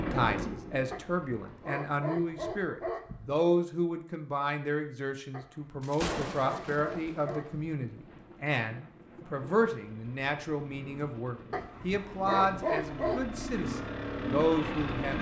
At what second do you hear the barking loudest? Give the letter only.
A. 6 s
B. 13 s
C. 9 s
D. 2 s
B.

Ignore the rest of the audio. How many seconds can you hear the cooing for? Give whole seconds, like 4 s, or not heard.
not heard.